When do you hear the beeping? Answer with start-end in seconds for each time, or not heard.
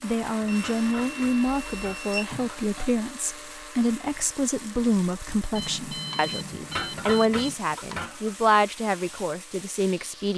0.5-2.5, 5.5-7.5.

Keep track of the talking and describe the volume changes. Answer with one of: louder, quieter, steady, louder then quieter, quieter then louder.
steady.